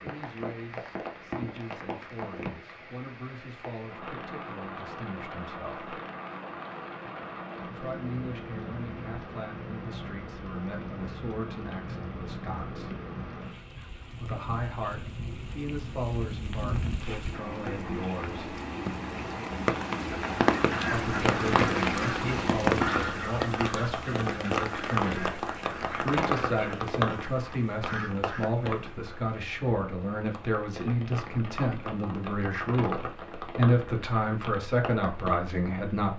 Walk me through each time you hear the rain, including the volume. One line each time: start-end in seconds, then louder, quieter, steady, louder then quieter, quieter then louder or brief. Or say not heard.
0.0-36.1 louder then quieter.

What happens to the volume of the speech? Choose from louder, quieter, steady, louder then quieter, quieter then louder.
louder.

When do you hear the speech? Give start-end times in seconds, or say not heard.
0.0-5.9, 7.7-12.9, 14.2-18.5, 20.9-36.1.